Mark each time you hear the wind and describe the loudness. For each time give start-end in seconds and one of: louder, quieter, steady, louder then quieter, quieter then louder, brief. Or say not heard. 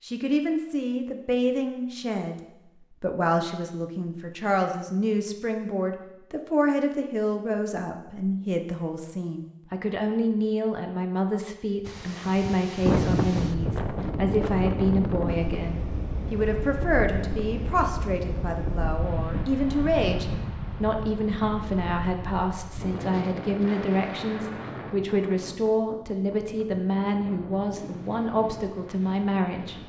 11.8-29.8 quieter.